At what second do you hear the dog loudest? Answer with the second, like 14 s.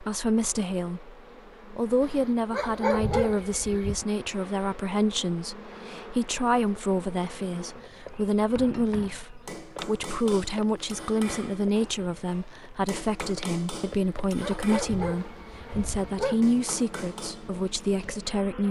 3 s.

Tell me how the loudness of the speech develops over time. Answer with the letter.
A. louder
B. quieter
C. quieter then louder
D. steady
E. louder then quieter
D.